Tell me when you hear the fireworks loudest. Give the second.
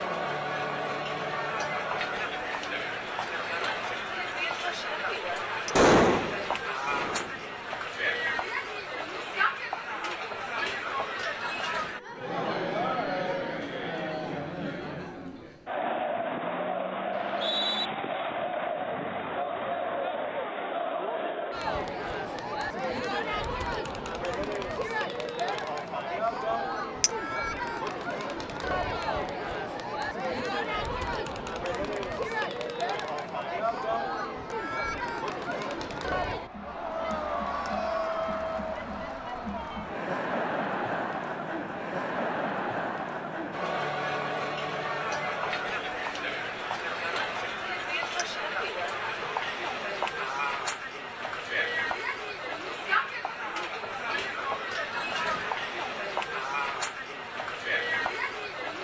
6 s.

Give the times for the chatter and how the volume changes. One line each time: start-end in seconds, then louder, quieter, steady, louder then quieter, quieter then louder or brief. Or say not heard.
0.0-58.7 steady.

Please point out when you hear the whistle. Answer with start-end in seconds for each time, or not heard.
17.1-17.9.